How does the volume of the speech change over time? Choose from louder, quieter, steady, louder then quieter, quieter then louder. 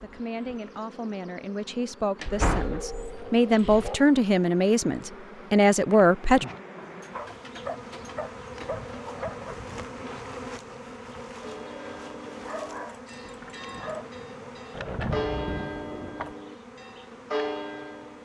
louder.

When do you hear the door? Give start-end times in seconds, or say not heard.
2.2-3.9, 14.7-16.4.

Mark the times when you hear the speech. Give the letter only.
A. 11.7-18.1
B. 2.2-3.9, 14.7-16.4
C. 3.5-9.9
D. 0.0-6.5
D.